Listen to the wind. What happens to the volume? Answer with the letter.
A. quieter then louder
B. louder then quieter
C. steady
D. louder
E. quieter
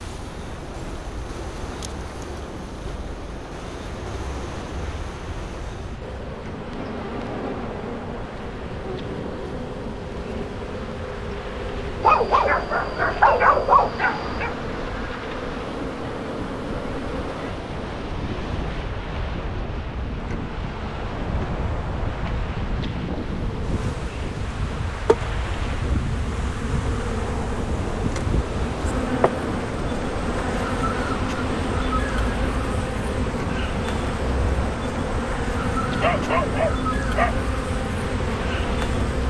D.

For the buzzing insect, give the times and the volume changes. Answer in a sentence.
The buzzing insect can be heard from 0.0 to 39.2 s, getting louder.